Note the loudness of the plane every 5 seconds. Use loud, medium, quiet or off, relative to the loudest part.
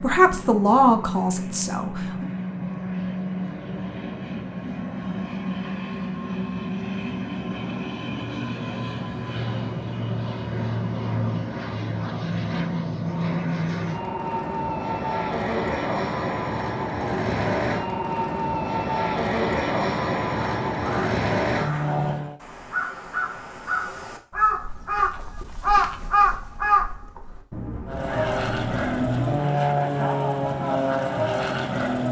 medium, medium, loud, loud, loud, loud, loud.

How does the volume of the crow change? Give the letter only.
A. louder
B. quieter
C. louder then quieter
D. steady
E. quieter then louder
C.